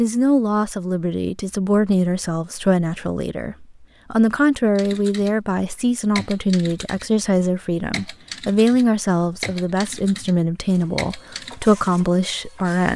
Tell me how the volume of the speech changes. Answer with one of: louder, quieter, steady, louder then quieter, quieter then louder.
steady.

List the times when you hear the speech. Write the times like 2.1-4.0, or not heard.
0.0-12.9.